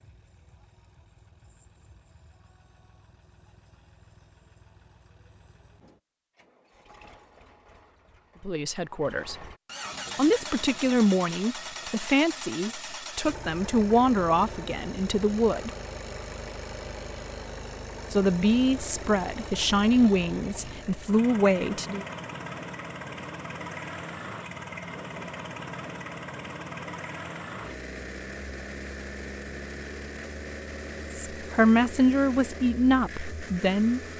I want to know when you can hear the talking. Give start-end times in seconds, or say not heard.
8.4-9.3, 10.2-15.7, 18.1-22.1, 31.3-34.0.